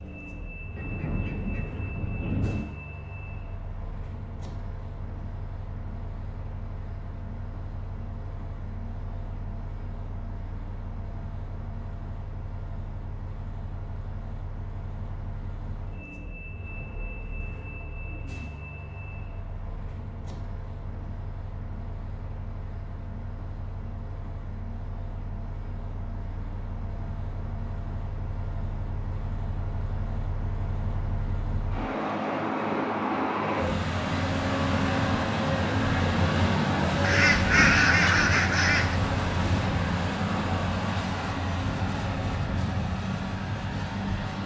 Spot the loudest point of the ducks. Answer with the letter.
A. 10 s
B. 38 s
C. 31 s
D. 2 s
B.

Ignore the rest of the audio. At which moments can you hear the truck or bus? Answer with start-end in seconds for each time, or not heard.
0.0-44.4.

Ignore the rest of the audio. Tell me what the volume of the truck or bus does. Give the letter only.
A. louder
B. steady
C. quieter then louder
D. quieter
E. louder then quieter
A.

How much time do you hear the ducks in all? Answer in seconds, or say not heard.
4 s.